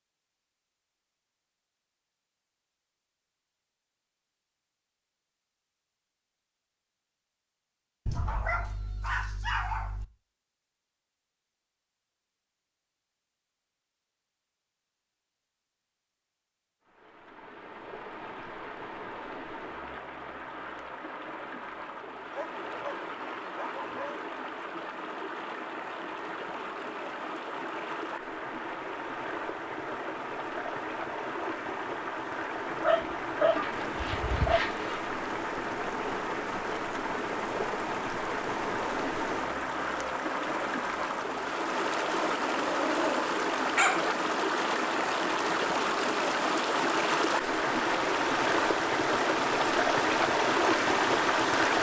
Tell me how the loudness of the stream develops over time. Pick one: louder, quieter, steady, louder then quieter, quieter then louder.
louder.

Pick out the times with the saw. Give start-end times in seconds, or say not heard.
33.4-35.1.